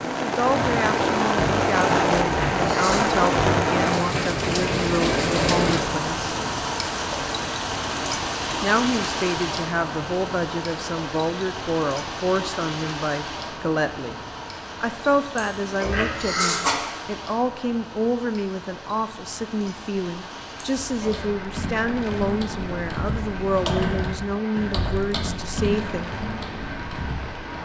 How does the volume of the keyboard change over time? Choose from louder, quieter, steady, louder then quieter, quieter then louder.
louder then quieter.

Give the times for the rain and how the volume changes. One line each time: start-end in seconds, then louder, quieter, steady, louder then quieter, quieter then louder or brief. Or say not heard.
0.0-27.6 quieter.